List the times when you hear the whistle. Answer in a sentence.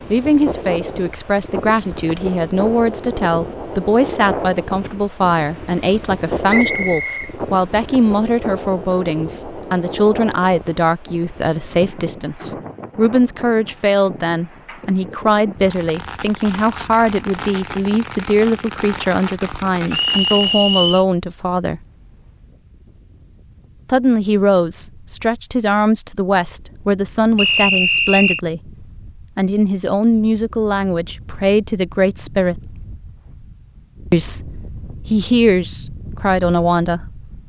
The whistle can be heard from 6.5 to 7.8 s, from 19.9 to 21.1 s and from 27.4 to 28.4 s.